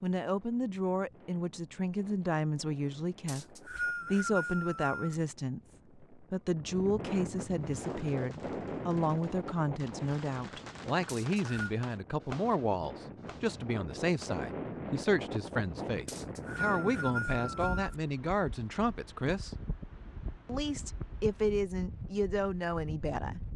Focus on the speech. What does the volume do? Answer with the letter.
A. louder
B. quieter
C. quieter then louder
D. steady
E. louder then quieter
D.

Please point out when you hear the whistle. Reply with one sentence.
The whistle can be heard from 3.2 to 5.2 s, from 11.1 to 11.7 s and from 16.1 to 17.9 s.